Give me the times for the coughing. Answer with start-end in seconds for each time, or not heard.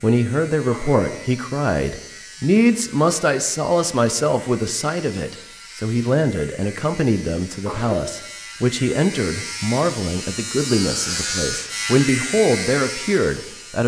0.7-1.3, 7.7-8.1.